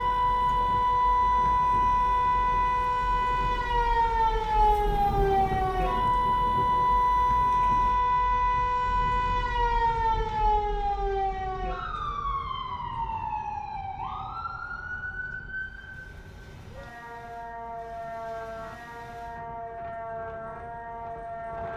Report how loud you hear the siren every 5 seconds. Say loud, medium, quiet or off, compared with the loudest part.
loud, loud, medium, quiet, quiet.